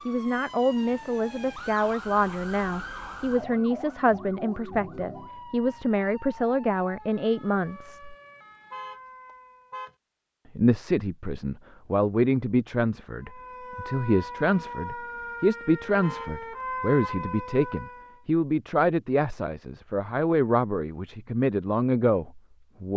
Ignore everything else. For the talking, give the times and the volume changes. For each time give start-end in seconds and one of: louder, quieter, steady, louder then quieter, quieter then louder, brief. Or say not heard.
0.1-8.2 steady
10.6-22.9 steady.